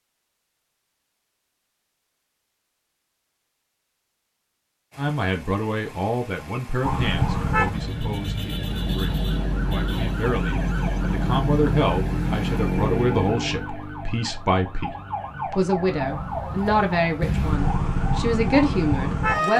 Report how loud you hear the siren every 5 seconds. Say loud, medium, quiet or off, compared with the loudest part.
off, loud, loud, loud.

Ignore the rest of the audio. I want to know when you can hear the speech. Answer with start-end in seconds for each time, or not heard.
5.0-19.5.